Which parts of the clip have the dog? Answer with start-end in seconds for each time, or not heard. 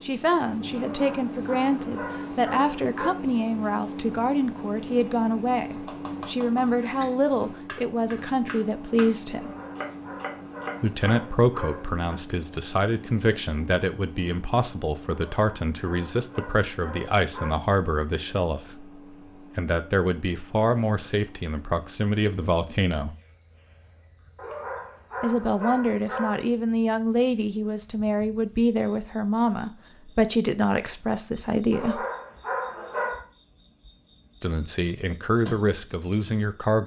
0.7-3.1, 9.3-12.2, 15.1-17.6, 24.4-26.4, 31.7-33.2.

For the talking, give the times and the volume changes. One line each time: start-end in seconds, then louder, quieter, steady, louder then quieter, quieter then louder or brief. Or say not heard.
0.0-9.6 steady
10.8-23.1 steady
25.2-32.0 steady
34.4-36.8 brief.